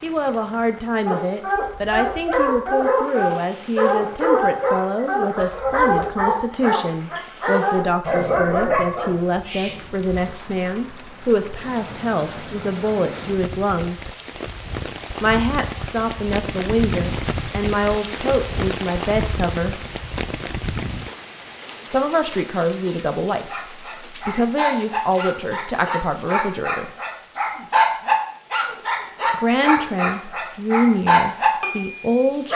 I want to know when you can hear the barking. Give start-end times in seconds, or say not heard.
1.1-10.3, 23.4-32.5.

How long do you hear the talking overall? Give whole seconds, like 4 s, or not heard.
27 s.